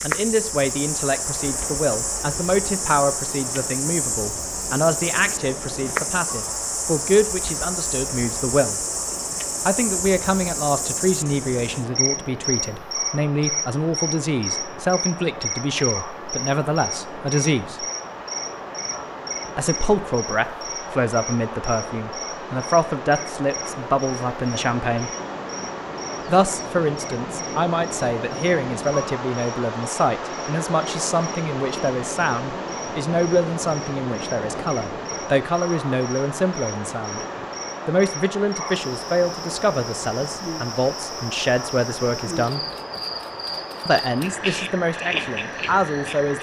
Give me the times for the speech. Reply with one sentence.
You can hear the speech from 0.0 to 8.8 s, from 9.7 to 17.9 s, from 19.6 to 25.1 s, from 26.2 to 37.2 s, from 37.9 to 42.6 s and from 43.9 to 46.3 s.